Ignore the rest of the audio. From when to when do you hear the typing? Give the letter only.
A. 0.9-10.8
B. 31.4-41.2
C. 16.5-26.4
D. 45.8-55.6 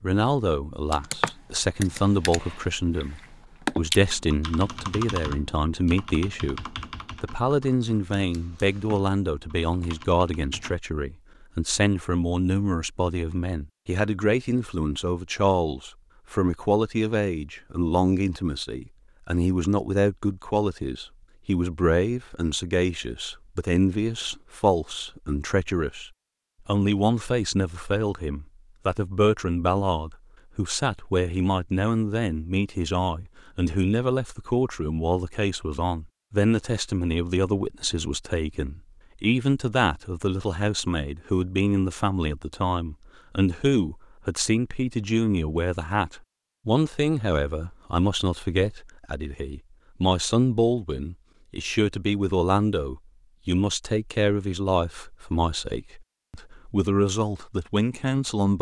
A.